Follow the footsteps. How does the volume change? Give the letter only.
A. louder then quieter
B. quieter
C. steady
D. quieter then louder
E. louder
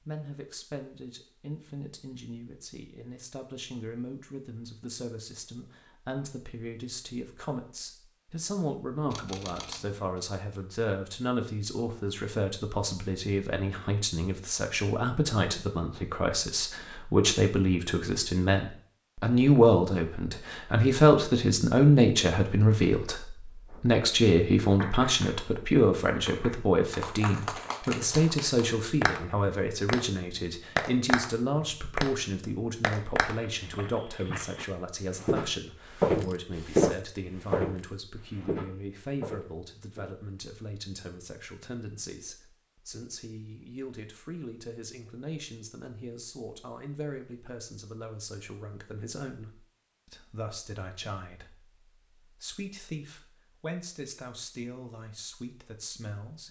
A.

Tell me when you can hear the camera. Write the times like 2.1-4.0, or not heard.
9.1-10.2.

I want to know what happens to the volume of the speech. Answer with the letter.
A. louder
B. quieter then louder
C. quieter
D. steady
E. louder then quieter
E.